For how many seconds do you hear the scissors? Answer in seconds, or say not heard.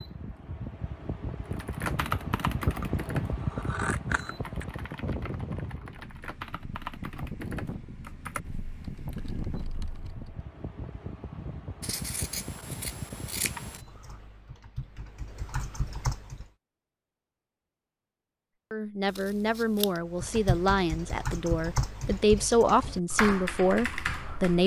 5 s.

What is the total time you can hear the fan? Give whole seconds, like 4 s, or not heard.
14 s.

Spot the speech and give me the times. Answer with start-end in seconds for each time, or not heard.
18.7-24.6.